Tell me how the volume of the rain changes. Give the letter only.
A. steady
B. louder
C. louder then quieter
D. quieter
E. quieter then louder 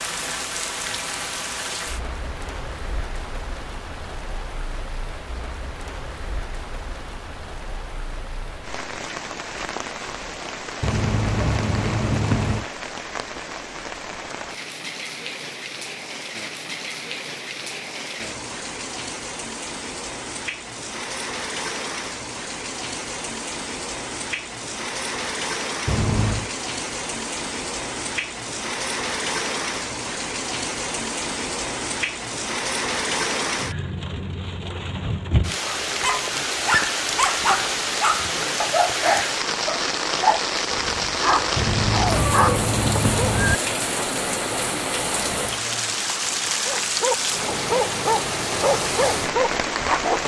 B.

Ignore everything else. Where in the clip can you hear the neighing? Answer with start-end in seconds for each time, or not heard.
10.8-12.7, 25.9-26.5, 41.5-43.6.